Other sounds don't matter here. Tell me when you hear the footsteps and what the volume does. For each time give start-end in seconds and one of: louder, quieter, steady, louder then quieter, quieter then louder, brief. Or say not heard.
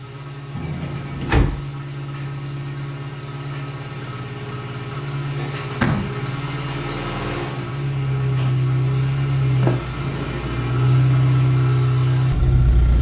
not heard.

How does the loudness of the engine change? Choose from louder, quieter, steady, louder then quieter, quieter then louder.
louder.